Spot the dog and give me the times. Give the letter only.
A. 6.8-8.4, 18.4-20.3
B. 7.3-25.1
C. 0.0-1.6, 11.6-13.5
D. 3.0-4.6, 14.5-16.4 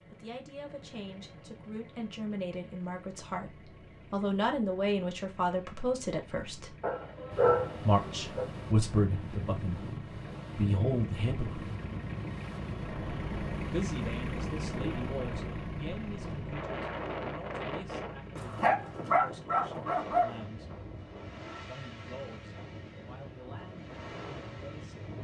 A.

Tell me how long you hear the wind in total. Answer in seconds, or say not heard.
18 s.